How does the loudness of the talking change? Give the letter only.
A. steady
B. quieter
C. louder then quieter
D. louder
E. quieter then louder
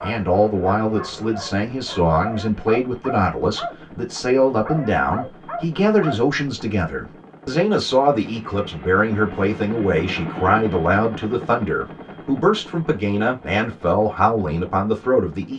A.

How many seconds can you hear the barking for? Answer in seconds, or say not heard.
7 s.